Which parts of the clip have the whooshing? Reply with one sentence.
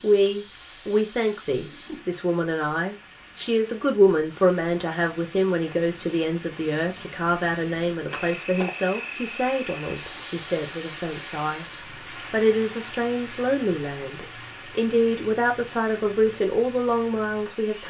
You can hear the whooshing from 1.6 to 2.1 s.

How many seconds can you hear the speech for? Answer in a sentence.
The speech can be heard for 17 seconds in total.